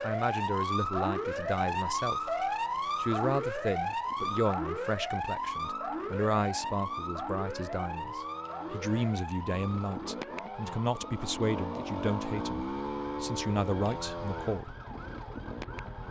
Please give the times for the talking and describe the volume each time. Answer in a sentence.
You can hear the talking from 0.0 to 14.8 s, at a steady volume.